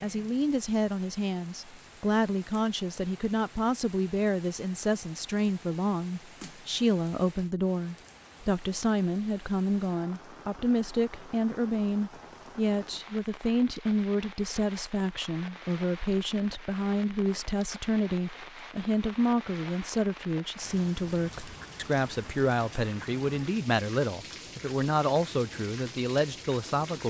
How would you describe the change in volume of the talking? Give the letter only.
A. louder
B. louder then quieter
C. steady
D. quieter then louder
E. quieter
C.